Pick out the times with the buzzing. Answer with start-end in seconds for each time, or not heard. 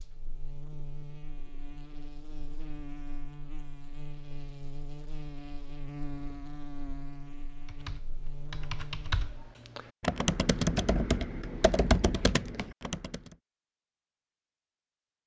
0.0-9.5.